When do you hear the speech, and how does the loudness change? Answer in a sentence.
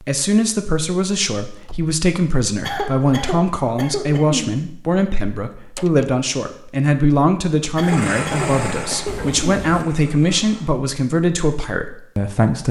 The speech can be heard from 0.0 to 12.6 s, at a steady volume.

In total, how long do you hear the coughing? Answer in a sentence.
You can hear the coughing for 4 seconds altogether.